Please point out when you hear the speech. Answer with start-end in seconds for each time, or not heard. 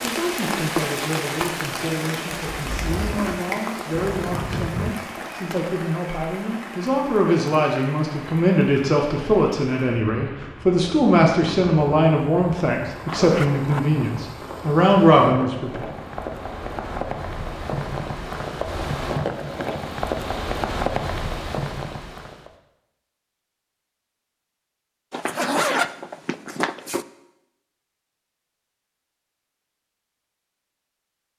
0.0-15.8.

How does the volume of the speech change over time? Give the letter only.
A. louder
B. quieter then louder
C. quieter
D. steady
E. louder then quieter
A.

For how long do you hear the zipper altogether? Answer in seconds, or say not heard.
5 s.